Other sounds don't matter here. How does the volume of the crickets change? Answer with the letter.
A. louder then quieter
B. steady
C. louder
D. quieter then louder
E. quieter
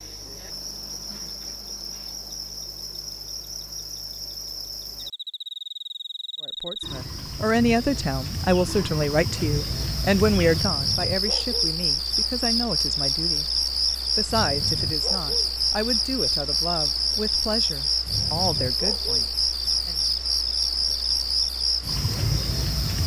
C.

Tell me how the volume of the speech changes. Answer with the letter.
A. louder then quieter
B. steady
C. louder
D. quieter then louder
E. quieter
E.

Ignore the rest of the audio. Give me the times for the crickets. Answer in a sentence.
You can hear the crickets from 0.0 to 23.0 s.